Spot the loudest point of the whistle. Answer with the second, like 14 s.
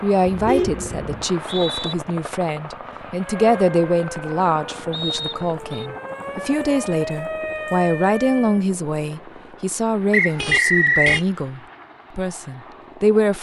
11 s.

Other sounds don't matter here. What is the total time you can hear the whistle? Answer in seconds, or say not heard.
3 s.